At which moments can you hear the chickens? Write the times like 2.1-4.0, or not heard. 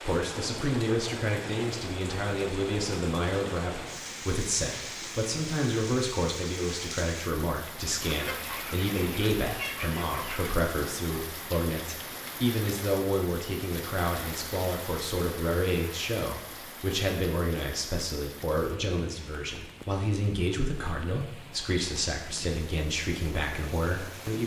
7.8-10.6.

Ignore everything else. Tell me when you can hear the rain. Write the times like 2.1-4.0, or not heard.
0.0-24.4.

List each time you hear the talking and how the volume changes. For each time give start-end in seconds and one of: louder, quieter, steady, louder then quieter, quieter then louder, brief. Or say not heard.
0.0-24.4 steady.